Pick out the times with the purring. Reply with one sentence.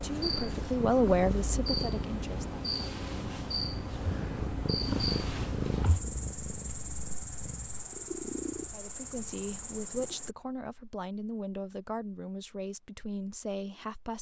The purring can be heard from 0.1 to 10.2 s.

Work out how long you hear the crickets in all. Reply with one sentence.
You can hear the crickets for 10 seconds altogether.